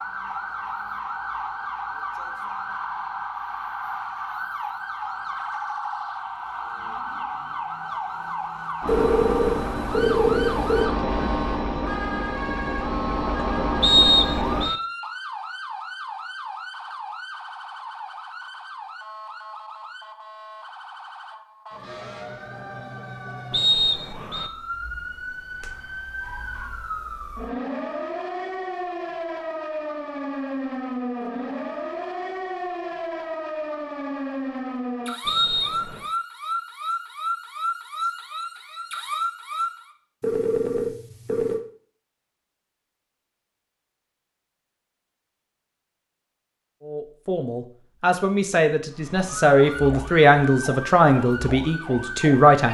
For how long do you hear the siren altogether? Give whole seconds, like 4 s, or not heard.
44 s.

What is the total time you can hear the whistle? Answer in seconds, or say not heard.
3 s.